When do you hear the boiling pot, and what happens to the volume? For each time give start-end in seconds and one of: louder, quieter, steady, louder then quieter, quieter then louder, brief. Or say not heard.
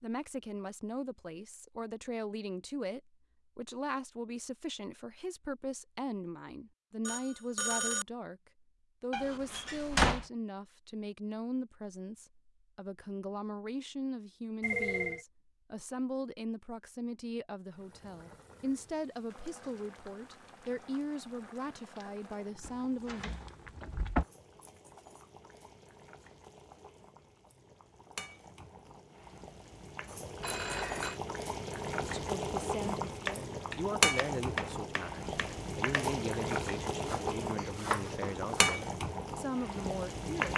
17.6-40.5 louder.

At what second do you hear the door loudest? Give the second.
10 s.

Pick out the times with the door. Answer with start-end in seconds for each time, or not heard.
9.1-10.2, 22.6-24.2, 37.5-38.5.